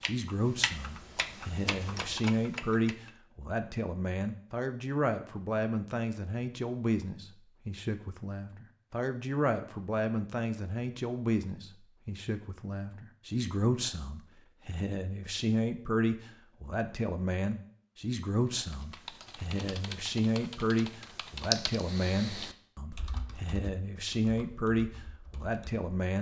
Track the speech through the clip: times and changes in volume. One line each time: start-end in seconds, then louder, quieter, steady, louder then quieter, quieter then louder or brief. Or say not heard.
0.0-26.1 steady.